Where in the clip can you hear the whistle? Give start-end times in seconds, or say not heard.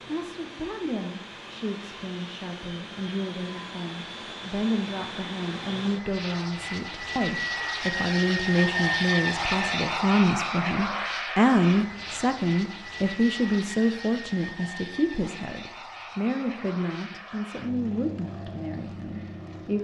not heard.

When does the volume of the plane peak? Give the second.
9 s.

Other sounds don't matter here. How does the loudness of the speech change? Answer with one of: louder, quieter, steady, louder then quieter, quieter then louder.
louder then quieter.